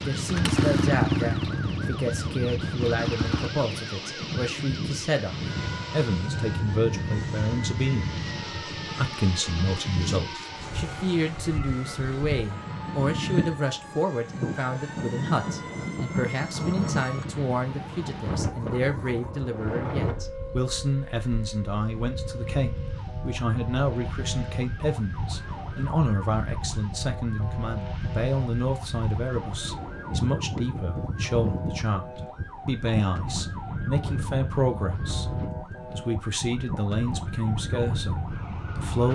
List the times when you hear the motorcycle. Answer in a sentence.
The motorcycle can be heard from 0.1 to 3.5 s.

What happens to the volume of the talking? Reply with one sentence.
The loudness of the talking stays about the same.